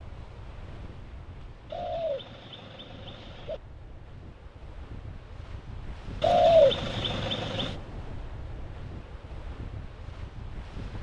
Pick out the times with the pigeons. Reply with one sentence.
The pigeons can be heard from 1.7 to 3.6 s and from 6.2 to 7.8 s.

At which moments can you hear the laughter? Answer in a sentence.
You can't hear the laughter here.